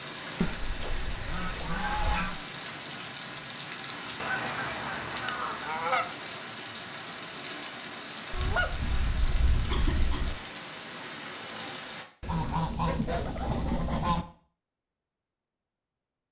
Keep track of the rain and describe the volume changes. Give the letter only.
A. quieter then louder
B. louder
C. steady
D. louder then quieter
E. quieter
C.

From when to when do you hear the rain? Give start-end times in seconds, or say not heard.
0.0-12.1.